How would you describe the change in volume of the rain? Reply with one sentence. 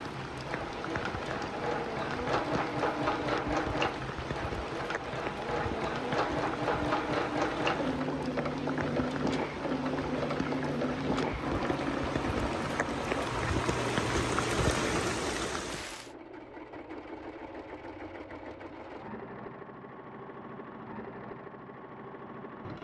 The volume of the rain goes up.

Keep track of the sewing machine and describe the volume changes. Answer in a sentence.
The loudness of the sewing machine goes down.